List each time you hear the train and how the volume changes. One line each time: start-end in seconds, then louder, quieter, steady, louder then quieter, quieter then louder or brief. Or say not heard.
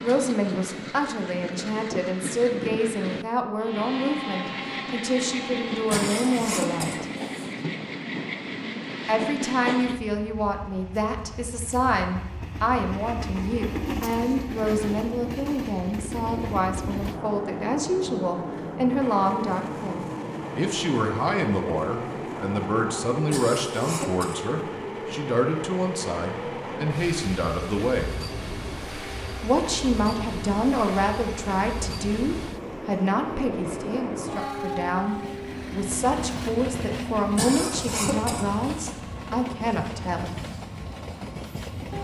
0.0-41.9 steady.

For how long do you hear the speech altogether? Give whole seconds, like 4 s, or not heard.
37 s.